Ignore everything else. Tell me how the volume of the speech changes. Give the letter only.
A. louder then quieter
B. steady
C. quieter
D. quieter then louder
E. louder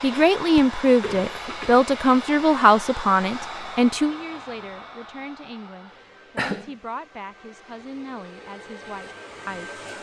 C.